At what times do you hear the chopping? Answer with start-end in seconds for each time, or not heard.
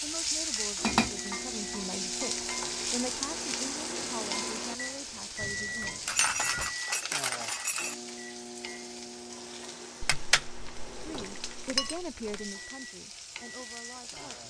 not heard.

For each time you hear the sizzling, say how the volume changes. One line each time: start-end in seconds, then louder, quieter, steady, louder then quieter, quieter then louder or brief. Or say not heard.
0.0-14.4 quieter.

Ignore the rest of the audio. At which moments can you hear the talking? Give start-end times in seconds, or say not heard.
0.0-6.0, 10.9-14.4.